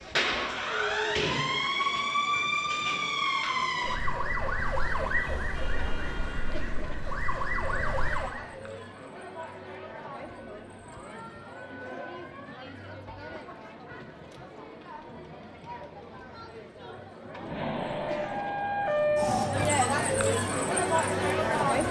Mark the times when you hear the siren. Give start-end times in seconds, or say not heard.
0.0-8.4, 17.4-21.8.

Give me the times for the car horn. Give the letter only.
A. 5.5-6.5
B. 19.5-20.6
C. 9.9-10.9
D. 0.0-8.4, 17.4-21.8
A.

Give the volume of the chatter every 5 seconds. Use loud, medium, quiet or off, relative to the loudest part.
quiet, quiet, quiet, medium, loud.